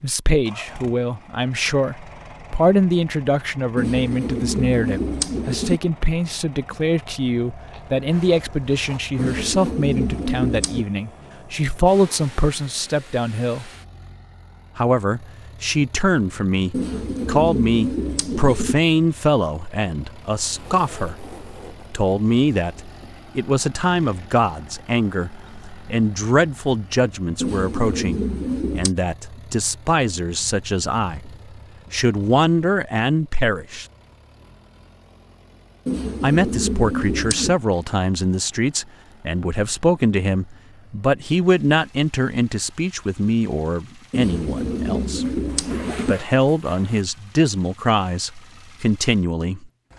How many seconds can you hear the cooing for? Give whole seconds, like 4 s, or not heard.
11 s.